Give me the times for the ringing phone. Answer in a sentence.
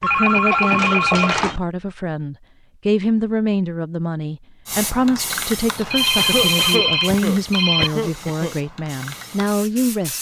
The ringing phone can be heard from 0.0 to 1.6 s and from 5.9 to 7.9 s.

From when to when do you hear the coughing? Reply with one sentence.
The coughing can be heard from 0.2 to 1.4 s and from 6.2 to 8.6 s.